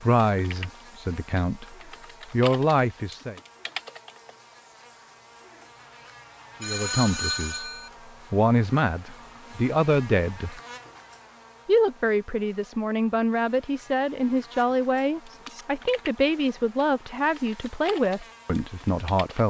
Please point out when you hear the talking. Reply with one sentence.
You can hear the talking from 0.0 to 3.4 s, from 6.6 to 7.7 s, from 8.3 to 10.6 s and from 11.7 to 19.4 s.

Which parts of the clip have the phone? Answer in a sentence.
The phone can be heard from 6.6 to 7.9 s.